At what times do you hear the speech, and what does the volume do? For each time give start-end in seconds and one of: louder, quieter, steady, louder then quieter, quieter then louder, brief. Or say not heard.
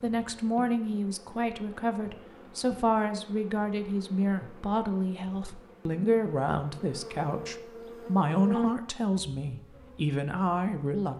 0.0-11.1 steady.